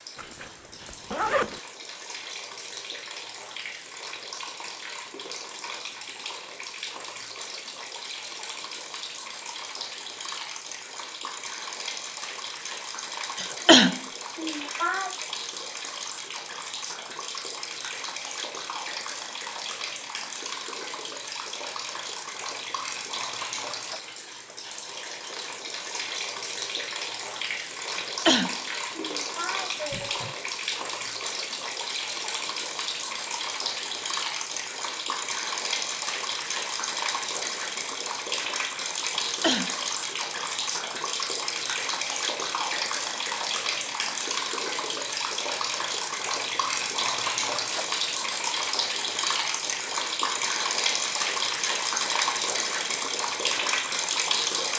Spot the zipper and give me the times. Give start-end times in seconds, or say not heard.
0.1-1.6.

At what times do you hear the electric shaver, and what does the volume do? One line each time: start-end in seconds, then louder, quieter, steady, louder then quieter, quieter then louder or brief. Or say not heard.
not heard.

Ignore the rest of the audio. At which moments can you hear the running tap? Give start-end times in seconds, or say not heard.
0.0-54.7.